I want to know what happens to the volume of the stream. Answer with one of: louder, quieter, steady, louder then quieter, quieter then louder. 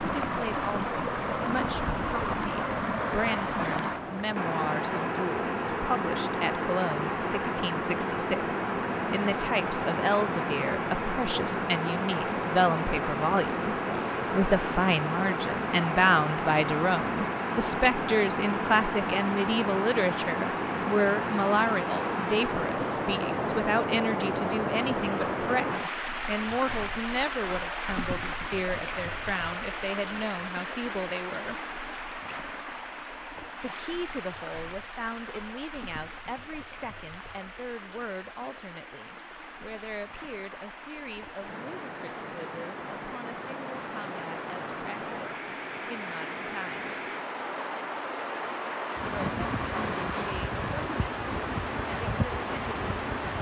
quieter then louder.